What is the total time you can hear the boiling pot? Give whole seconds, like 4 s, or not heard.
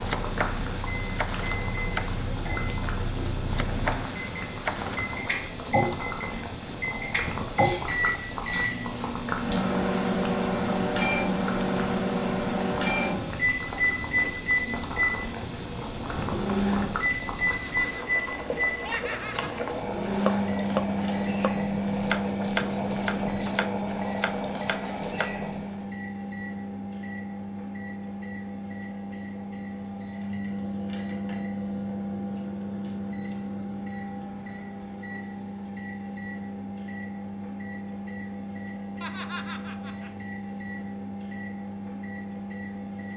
26 s.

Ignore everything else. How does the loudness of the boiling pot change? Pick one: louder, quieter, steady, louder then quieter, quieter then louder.
steady.